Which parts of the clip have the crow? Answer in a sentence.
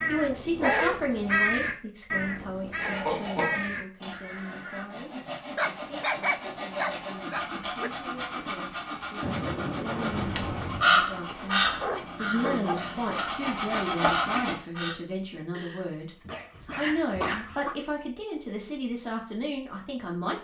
You can hear the crow from 0.0 to 4.8 s and from 10.2 to 14.9 s.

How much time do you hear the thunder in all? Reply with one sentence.
You can hear the thunder for 2 seconds altogether.